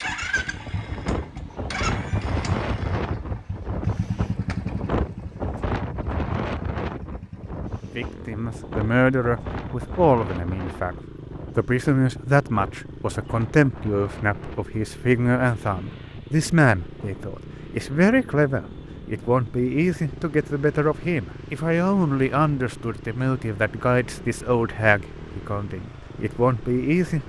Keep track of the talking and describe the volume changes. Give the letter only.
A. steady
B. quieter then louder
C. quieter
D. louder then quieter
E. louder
A.